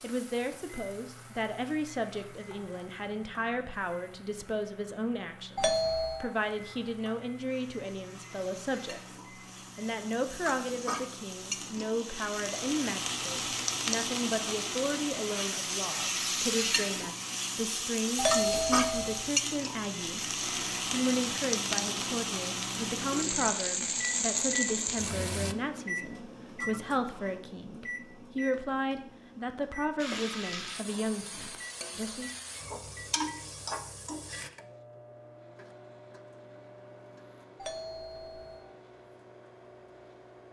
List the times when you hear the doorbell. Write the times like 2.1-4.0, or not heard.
5.5-6.2, 18.1-19.2, 37.5-38.7.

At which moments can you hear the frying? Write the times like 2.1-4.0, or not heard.
0.0-25.6, 29.9-34.5.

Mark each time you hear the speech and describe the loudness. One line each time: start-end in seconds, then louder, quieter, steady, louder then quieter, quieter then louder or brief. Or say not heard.
0.0-9.2 steady
9.8-20.2 steady
20.9-32.3 steady.